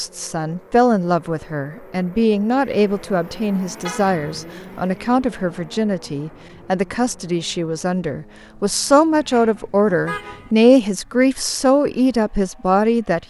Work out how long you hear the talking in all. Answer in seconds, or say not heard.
13 s.